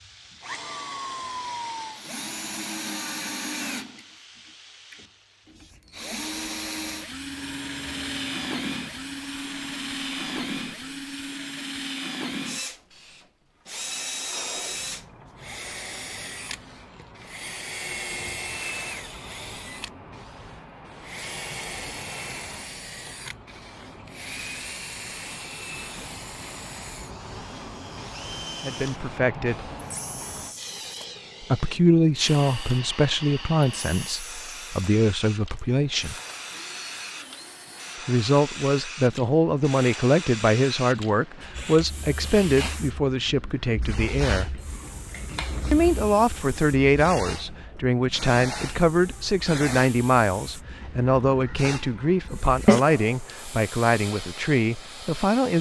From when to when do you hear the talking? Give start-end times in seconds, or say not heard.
28.6-29.6, 31.4-36.1, 38.0-44.6, 45.7-55.5.